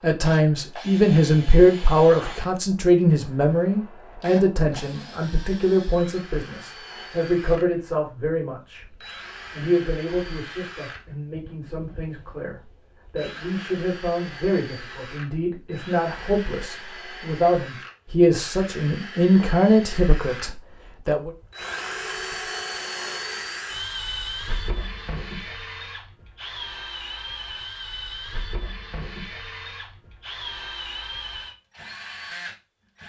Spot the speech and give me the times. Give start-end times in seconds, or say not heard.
0.0-21.3.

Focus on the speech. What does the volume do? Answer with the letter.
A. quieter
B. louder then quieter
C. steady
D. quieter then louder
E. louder
D.